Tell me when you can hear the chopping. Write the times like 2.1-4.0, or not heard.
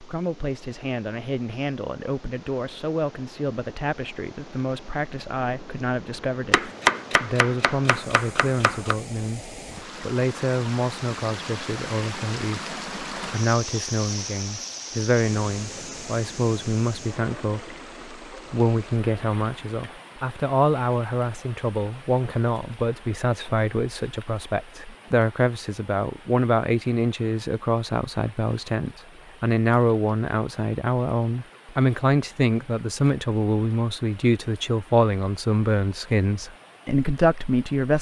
6.5-8.9.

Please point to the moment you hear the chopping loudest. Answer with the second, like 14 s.
7 s.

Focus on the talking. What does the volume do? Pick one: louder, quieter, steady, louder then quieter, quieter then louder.
louder.